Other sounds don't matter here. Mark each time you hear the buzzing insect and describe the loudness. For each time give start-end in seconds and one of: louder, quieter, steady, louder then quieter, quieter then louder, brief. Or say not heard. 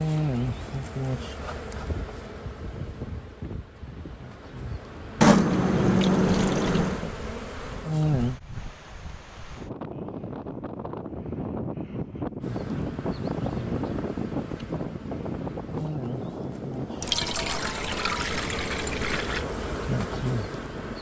0.0-8.4 quieter then louder
12.4-20.9 louder.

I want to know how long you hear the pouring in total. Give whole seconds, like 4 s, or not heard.
4 s.